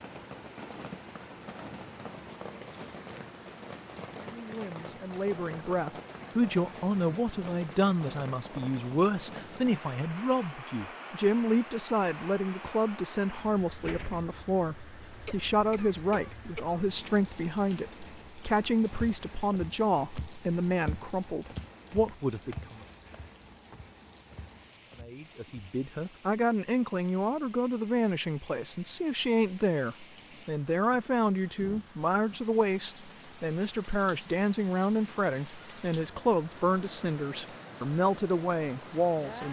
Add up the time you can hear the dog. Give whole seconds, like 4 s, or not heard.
not heard.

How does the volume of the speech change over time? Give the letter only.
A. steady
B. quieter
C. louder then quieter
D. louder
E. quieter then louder
A.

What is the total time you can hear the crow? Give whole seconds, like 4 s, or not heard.
not heard.